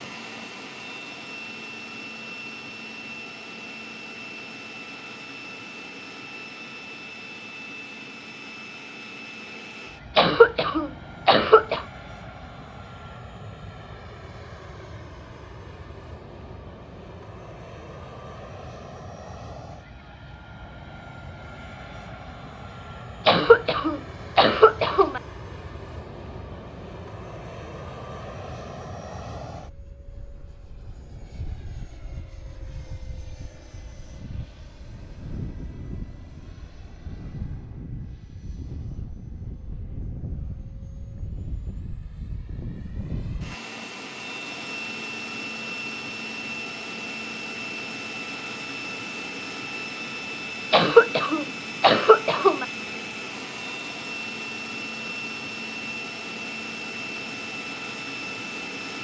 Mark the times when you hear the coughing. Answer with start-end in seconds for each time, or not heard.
10.2-11.8, 23.2-25.2, 50.7-52.6.